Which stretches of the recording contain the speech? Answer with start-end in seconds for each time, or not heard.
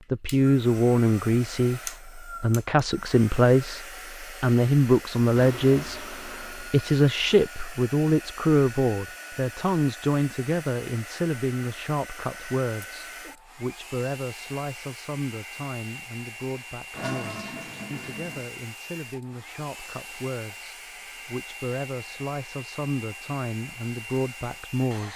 0.1-25.1.